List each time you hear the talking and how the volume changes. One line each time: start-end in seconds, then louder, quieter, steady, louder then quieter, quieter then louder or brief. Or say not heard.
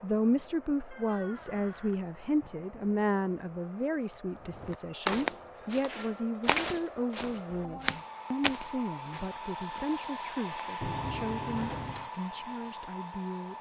0.0-13.5 quieter.